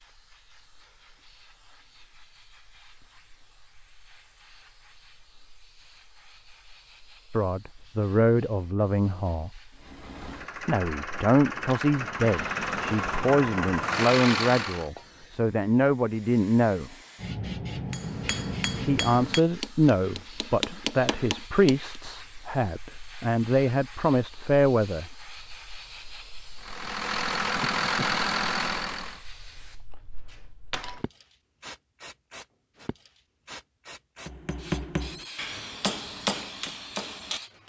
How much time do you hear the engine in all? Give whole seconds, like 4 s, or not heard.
8 s.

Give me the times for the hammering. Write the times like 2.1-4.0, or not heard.
17.9-22.0, 34.2-37.6.